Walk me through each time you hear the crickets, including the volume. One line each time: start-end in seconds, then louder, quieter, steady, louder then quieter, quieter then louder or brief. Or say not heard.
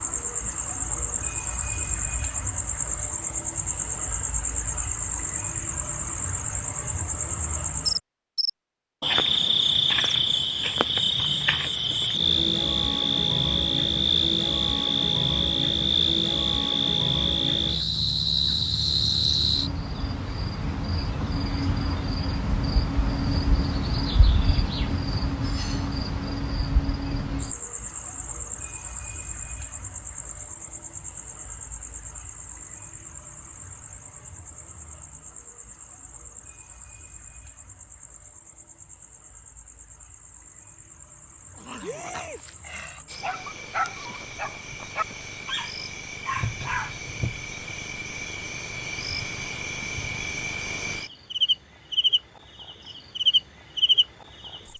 0.0-54.7 quieter then louder.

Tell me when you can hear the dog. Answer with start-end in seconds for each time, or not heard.
41.5-47.0.